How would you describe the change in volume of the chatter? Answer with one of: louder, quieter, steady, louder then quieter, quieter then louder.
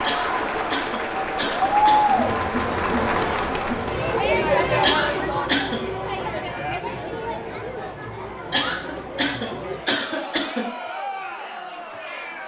quieter.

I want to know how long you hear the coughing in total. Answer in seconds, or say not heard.
5 s.